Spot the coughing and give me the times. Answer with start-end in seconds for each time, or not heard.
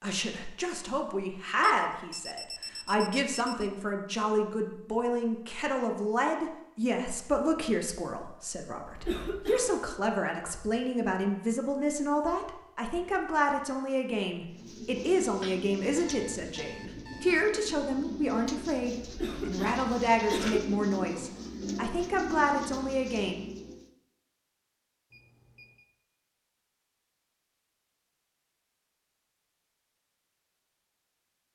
8.8-9.8, 19.0-20.6.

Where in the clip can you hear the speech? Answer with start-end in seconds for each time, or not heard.
0.0-23.4.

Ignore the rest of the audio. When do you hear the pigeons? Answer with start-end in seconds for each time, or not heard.
14.5-23.9.